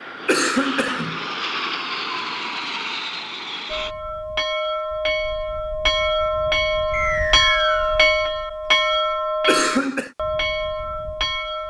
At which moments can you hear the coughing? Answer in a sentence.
The coughing can be heard from 0.2 to 1.2 s and from 9.4 to 10.1 s.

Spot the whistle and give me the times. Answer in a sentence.
You can hear the whistle from 6.9 to 8.1 s.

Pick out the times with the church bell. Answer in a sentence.
You can hear the church bell from 3.7 to 11.6 s.